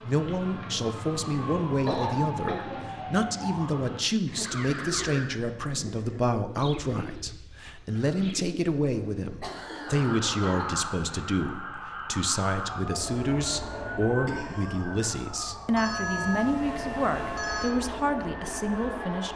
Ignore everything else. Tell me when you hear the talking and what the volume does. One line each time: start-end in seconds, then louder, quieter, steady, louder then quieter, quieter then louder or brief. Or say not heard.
0.0-19.3 steady.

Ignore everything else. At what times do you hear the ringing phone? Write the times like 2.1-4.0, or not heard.
15.8-17.8.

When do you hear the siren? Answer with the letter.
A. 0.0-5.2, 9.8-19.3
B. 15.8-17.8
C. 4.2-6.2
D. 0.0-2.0
A.